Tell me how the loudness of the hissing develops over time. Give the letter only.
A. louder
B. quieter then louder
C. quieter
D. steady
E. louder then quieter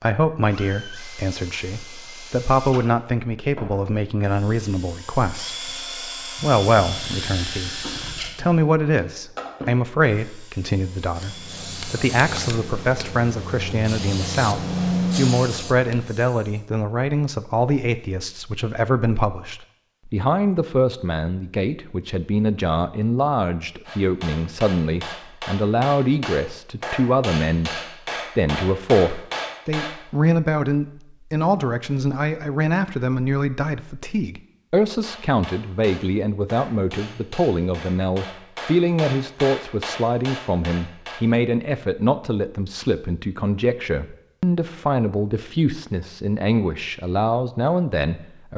E.